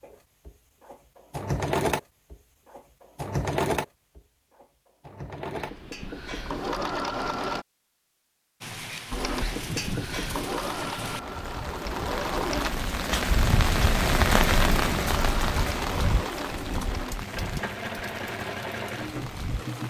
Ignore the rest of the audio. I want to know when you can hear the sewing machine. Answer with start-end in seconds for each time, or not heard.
0.0-7.7, 9.1-12.8, 15.1-19.8.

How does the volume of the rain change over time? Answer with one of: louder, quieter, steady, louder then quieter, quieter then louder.
louder then quieter.